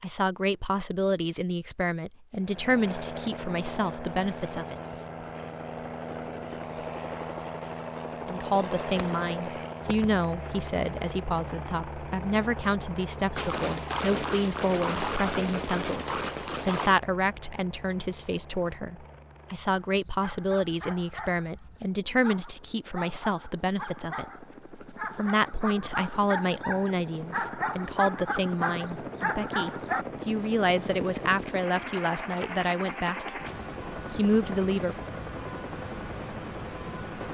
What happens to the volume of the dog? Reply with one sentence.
The volume of the dog goes up.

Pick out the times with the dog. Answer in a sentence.
You can hear the dog from 19.7 to 30.1 s.